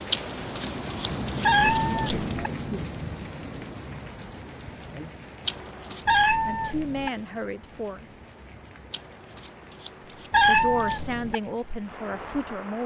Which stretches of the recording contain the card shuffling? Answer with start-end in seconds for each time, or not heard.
0.1-2.4, 5.5-6.0, 8.9-11.2.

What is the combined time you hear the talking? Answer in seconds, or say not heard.
4 s.